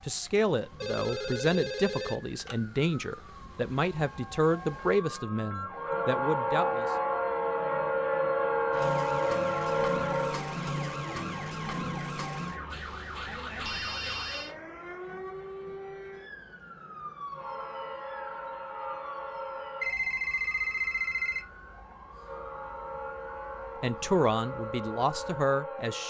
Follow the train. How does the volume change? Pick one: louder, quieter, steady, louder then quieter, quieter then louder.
quieter then louder.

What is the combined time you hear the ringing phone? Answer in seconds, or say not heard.
5 s.